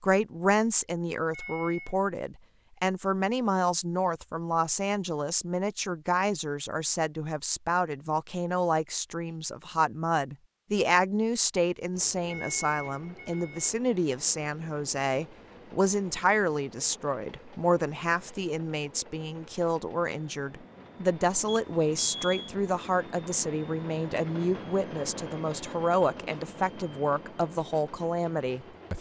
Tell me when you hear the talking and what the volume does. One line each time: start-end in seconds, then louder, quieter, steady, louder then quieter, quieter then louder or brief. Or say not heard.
0.0-28.9 steady.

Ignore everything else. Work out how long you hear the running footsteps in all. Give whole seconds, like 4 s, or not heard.
not heard.